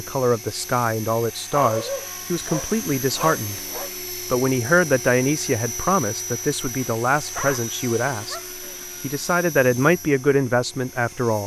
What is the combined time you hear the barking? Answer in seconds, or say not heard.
4 s.